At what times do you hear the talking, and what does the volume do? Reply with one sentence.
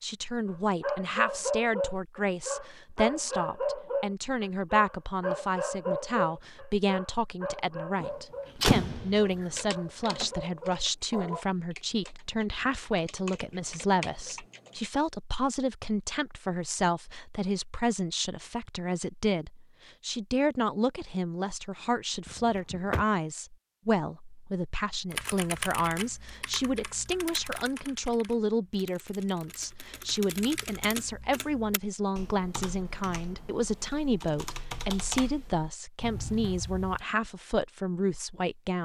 You can hear the talking from 0.0 to 38.8 s, at a steady volume.